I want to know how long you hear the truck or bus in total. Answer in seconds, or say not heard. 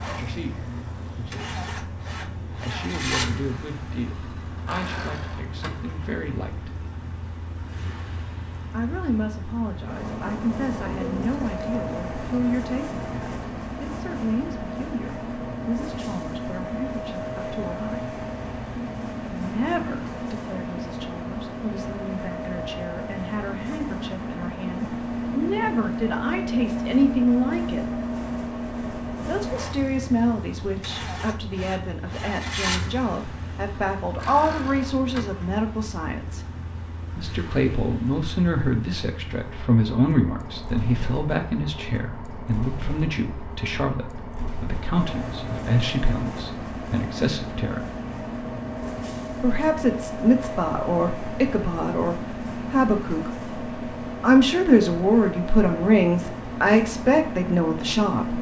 58 s.